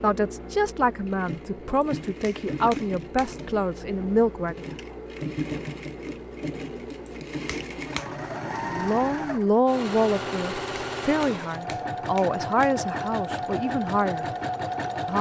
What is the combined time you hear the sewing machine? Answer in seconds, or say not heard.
15 s.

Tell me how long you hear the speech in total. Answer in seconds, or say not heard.
10 s.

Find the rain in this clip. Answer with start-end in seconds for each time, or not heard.
not heard.